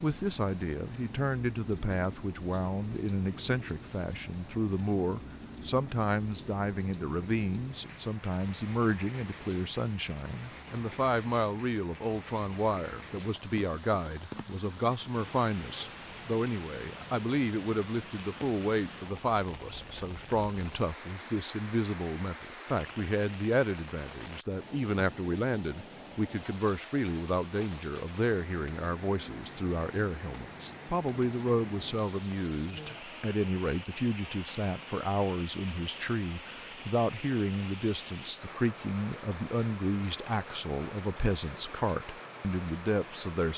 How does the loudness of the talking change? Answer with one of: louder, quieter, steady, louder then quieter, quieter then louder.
steady.